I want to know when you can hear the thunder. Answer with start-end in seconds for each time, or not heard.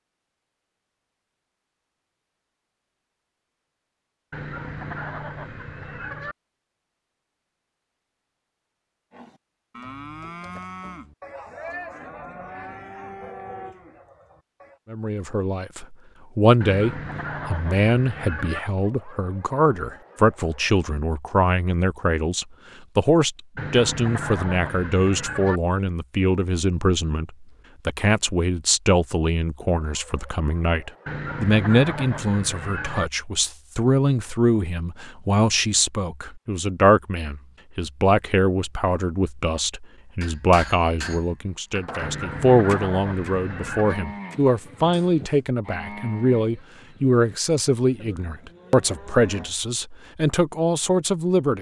not heard.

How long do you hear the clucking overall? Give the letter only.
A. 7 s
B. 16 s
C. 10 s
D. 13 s
C.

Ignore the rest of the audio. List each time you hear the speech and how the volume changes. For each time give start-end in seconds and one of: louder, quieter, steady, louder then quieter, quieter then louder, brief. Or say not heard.
14.9-51.5 steady.